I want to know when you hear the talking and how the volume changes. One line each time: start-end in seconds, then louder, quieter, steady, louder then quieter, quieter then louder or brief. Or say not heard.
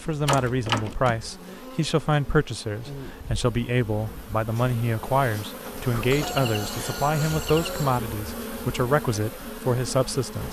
0.0-10.4 steady.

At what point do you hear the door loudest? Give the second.
1 s.